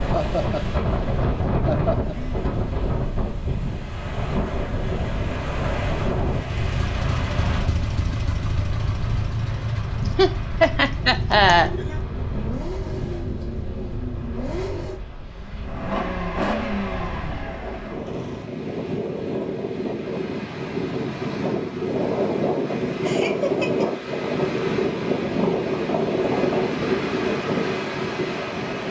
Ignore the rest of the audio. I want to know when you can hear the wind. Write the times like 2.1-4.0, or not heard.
0.0-28.8.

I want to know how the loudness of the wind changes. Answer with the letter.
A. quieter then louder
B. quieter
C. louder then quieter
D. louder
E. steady
A.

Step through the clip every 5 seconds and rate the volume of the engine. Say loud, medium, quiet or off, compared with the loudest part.
off, loud, loud, loud, off, off.